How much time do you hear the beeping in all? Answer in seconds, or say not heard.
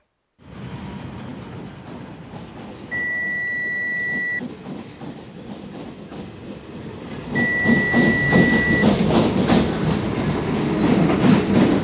3 s.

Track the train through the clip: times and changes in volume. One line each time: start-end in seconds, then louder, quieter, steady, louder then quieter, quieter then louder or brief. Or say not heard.
0.4-11.8 louder.